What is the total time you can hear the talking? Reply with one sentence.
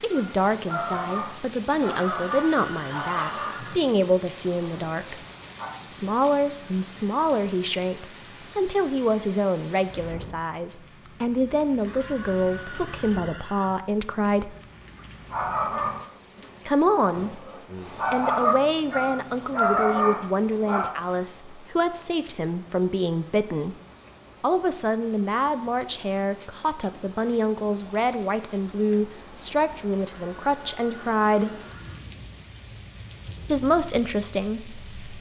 The talking can be heard for 29 seconds in total.